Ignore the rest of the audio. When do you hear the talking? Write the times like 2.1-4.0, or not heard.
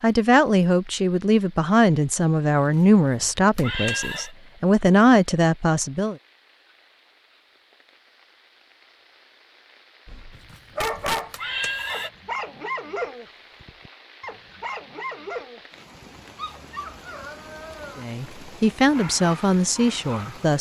0.0-6.2, 17.9-20.5.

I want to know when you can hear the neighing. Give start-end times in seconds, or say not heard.
2.5-4.3, 10.3-12.1.